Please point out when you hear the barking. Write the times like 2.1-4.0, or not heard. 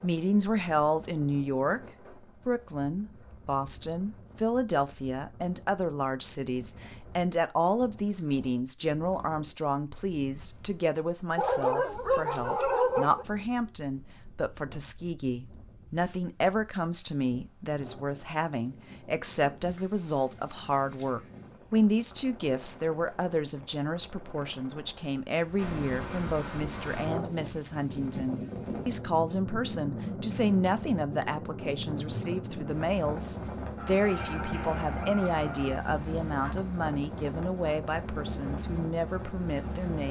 11.3-13.2, 33.8-35.8.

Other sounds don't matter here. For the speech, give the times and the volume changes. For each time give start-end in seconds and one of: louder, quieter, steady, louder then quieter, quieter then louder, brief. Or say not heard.
0.0-1.8 brief
2.5-40.0 steady.